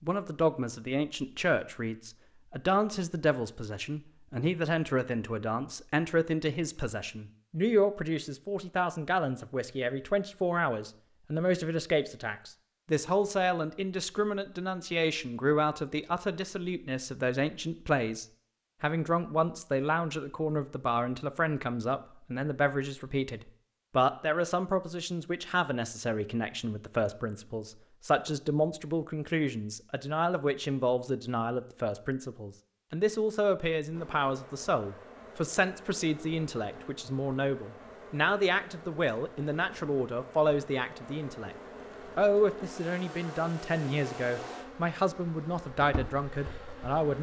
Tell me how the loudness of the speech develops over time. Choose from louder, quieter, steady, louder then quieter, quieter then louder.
steady.